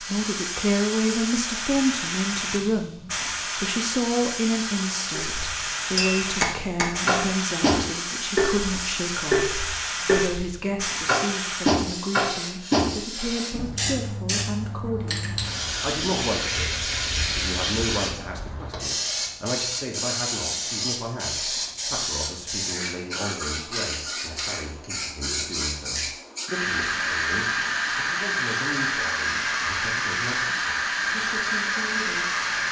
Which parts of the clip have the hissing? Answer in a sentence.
The hissing can be heard from 0.0 to 32.6 s.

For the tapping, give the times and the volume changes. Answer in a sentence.
The tapping can be heard from 5.1 to 13.7 s, at a steady volume.